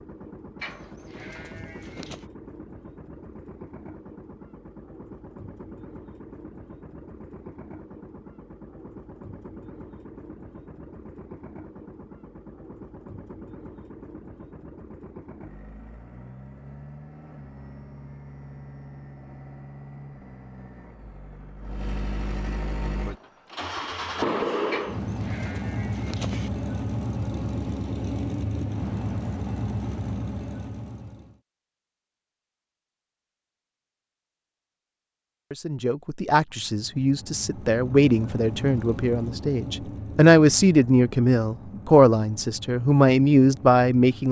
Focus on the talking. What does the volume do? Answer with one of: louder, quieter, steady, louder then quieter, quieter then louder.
louder.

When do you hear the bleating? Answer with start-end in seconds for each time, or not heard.
0.6-2.2, 24.7-26.5.